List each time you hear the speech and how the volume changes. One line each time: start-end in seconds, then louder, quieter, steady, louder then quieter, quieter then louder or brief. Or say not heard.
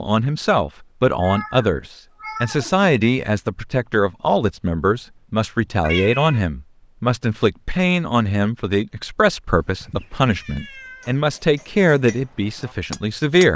0.0-13.5 steady.